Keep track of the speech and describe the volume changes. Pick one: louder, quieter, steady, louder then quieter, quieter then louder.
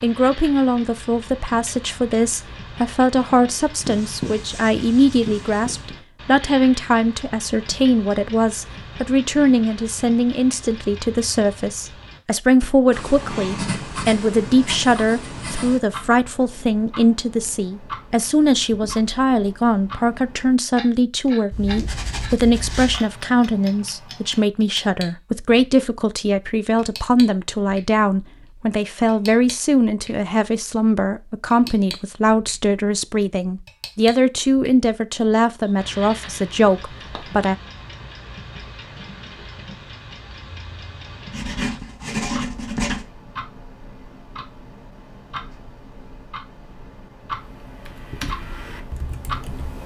steady.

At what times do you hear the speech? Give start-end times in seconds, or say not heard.
0.0-37.5.